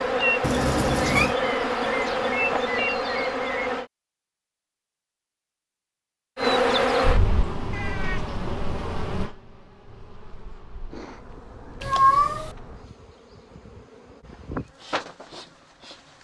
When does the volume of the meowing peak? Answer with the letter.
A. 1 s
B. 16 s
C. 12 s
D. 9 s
C.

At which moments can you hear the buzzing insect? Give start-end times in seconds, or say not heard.
0.0-3.9, 6.3-16.2.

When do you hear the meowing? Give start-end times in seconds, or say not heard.
0.4-1.4, 7.7-8.3, 11.8-12.5.